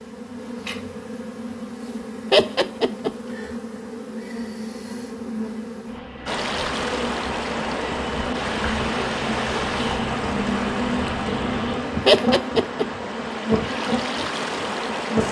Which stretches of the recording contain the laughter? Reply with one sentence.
The laughter can be heard from 2.3 to 3.1 s and from 12.1 to 12.8 s.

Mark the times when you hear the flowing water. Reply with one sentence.
You can hear the flowing water from 6.2 to 15.2 s.